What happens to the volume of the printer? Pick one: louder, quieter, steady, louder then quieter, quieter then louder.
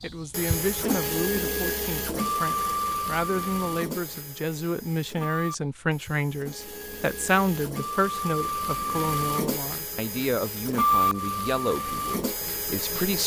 quieter then louder.